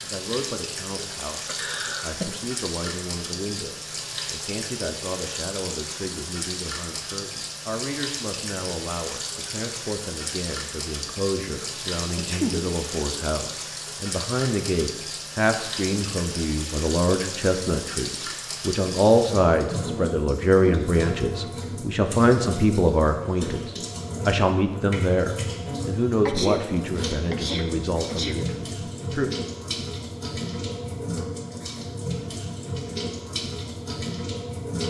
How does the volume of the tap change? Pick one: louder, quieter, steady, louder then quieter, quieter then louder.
steady.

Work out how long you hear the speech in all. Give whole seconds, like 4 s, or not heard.
29 s.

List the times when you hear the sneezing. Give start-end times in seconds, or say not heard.
1.4-2.2, 12.2-12.6, 26.2-28.4.